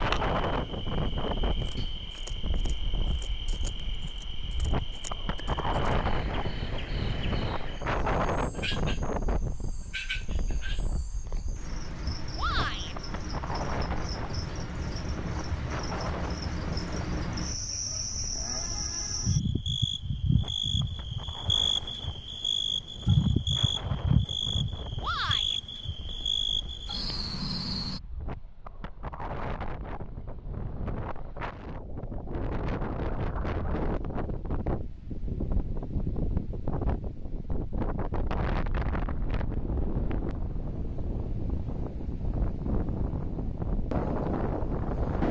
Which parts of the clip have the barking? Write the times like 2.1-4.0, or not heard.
not heard.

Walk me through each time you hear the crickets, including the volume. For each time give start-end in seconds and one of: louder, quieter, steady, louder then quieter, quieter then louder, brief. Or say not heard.
0.0-28.0 louder.